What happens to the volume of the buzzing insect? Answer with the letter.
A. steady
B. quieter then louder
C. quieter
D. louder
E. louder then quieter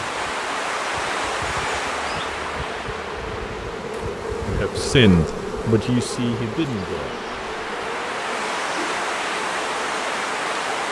E.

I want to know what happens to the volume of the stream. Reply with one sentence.
The volume of the stream goes down, then up.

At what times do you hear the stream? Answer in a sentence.
The stream can be heard from 0.0 to 10.8 s.